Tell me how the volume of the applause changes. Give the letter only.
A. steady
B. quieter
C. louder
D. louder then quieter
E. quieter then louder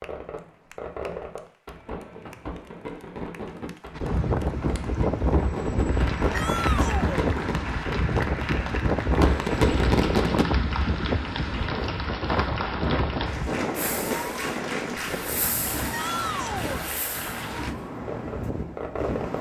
C.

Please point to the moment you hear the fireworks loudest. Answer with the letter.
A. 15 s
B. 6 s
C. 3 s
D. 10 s
D.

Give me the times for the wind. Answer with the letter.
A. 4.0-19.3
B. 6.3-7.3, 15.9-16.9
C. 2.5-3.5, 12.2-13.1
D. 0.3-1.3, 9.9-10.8
A.